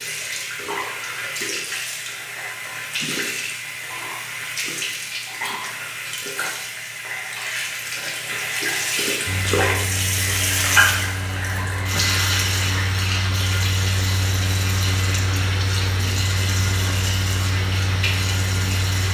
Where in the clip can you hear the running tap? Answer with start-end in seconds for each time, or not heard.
0.0-19.0.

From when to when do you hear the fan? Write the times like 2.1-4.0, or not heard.
9.2-19.0.